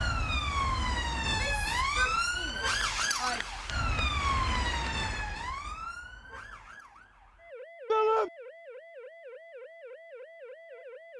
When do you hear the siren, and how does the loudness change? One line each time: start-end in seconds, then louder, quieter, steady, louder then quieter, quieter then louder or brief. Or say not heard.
0.0-11.1 quieter.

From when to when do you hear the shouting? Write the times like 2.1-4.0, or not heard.
1.2-3.6, 7.8-8.3.